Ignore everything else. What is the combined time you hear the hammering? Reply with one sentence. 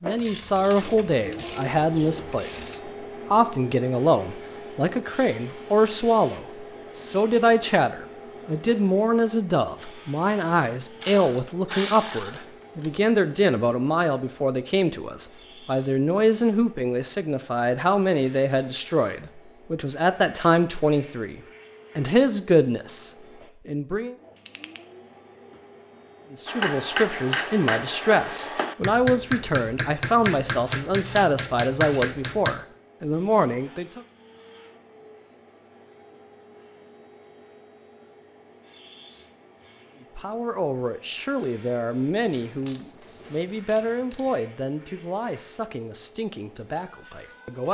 The hammering can be heard for 6 seconds in total.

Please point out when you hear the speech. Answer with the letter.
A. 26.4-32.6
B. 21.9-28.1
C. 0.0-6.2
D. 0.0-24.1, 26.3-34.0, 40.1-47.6
D.